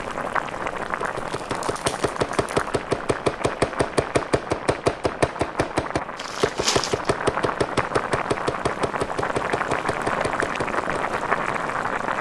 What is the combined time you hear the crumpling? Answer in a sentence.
The crumpling can be heard for 3 seconds in total.